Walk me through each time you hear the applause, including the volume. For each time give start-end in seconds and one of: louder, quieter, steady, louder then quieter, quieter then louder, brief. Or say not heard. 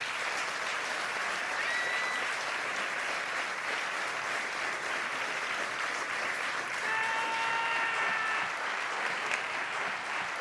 0.0-10.3 steady.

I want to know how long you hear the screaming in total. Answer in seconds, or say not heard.
2 s.